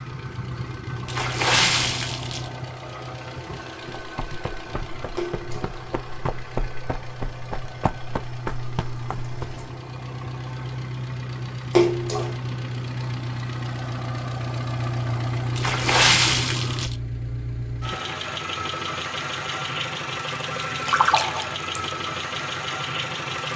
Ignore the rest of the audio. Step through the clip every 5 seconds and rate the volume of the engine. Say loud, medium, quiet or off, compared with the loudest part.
medium, medium, loud, loud, loud.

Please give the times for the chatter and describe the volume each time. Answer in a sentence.
The chatter can't be heard in this clip.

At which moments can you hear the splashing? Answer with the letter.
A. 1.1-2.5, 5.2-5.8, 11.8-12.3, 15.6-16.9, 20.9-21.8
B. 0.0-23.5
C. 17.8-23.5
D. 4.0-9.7
A.